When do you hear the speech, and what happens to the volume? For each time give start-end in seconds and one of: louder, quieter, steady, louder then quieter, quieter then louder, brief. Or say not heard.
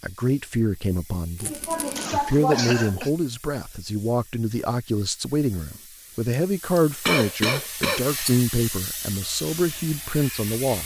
0.0-1.5 brief
2.1-10.8 steady.